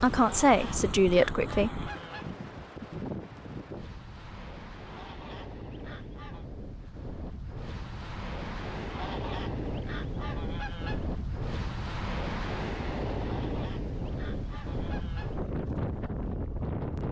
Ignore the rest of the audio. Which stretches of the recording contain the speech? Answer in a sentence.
You can hear the speech from 0.0 to 1.7 s.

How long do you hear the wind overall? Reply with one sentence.
The wind can be heard for 17 seconds in total.